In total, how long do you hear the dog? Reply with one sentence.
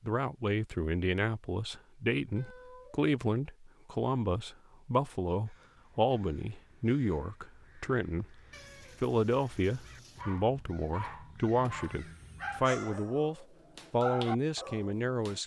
You can hear the dog for 5 seconds altogether.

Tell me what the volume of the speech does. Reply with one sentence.
The volume of the speech stays about the same.